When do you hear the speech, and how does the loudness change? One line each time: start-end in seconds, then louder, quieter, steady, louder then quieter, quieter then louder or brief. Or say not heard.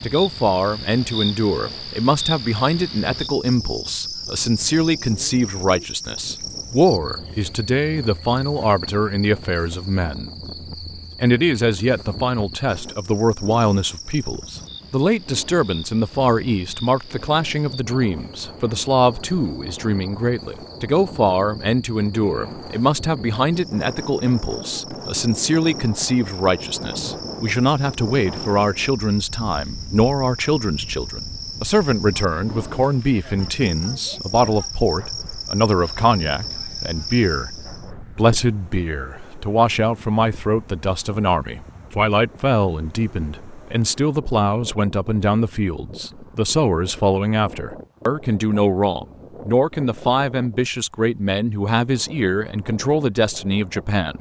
0.0-10.3 steady
11.2-54.1 steady.